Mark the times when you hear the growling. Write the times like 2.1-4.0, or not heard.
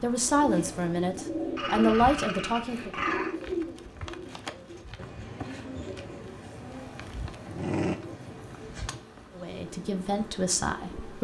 1.6-3.4, 7.0-8.0.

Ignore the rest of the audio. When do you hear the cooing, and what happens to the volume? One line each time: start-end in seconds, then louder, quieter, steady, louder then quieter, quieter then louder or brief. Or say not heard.
0.2-11.1 quieter.